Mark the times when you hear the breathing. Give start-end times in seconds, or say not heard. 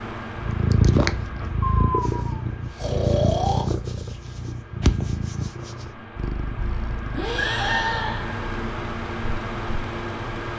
1.6-3.6, 7.1-8.4.